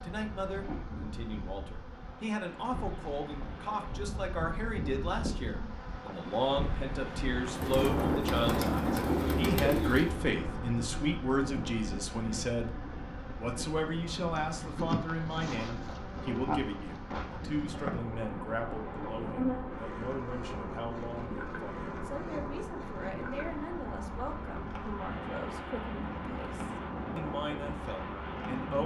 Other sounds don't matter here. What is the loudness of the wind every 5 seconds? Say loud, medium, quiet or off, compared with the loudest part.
medium, loud, medium, medium, medium, medium.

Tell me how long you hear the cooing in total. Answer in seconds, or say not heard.
3 s.